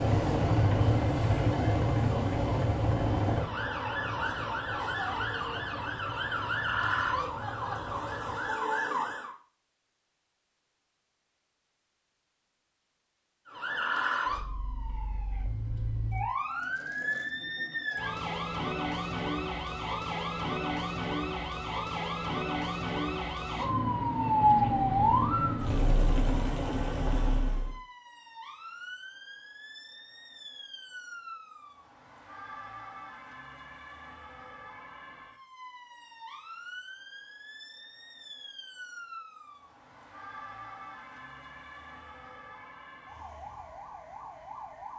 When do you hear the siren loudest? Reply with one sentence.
The volume of the siren peaks at 25 seconds.